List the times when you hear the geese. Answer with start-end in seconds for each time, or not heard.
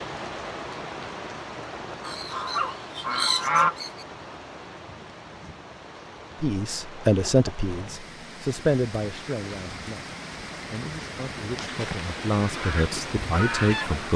2.0-4.0, 12.4-14.1.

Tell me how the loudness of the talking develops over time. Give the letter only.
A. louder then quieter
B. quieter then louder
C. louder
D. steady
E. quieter
B.